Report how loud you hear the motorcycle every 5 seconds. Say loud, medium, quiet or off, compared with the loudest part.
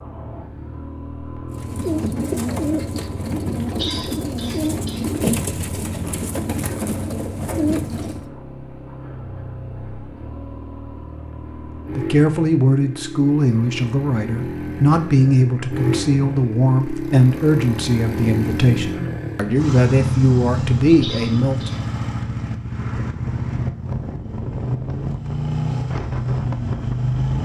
quiet, quiet, medium, loud, loud, loud.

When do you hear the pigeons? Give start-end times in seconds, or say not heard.
1.5-8.2.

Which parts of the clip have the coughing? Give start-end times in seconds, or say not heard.
3.8-5.0, 21.0-21.8.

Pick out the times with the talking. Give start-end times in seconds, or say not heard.
11.9-21.9.